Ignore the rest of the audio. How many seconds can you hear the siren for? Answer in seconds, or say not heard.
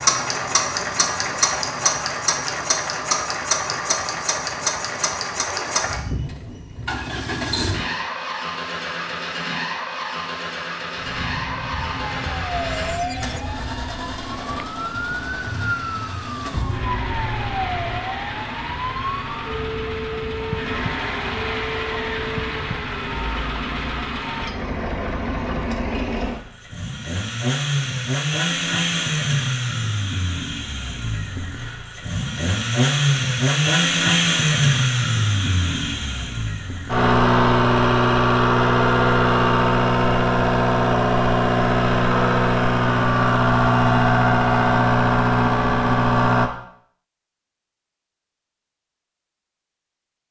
13 s.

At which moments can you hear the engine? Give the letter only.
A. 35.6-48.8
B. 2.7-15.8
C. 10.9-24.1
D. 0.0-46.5
D.